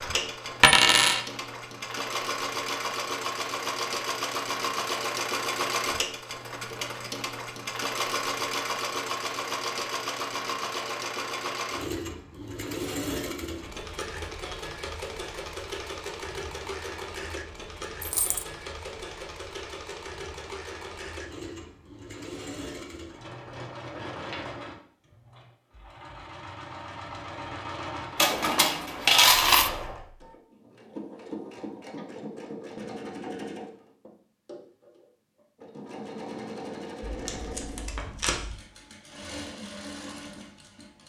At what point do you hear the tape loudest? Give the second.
38 s.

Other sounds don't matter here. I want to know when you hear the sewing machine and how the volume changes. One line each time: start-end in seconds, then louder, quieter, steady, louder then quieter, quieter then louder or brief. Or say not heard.
0.0-41.0 quieter.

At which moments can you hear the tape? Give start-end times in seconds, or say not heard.
37.0-38.5.